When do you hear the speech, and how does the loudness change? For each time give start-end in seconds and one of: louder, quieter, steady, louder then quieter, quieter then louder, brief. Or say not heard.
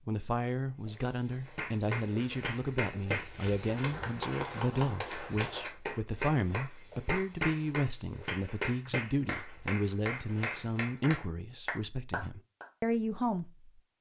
0.1-13.7 steady.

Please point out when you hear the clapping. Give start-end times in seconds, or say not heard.
1.6-12.7.